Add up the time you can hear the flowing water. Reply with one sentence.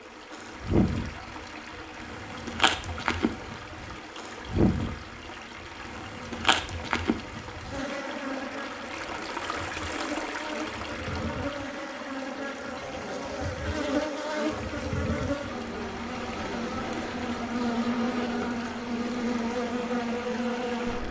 You can hear the flowing water for 21 seconds altogether.